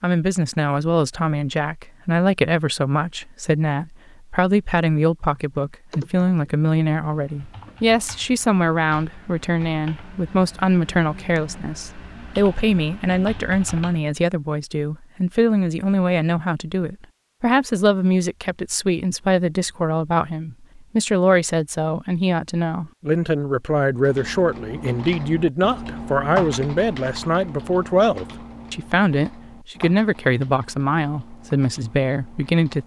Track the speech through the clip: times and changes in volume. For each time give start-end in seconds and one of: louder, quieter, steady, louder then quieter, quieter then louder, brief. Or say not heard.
0.0-32.8 steady.